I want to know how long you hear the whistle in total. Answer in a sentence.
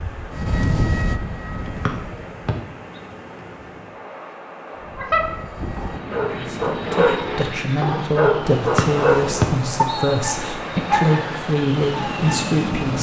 The whistle can be heard for 2 seconds in total.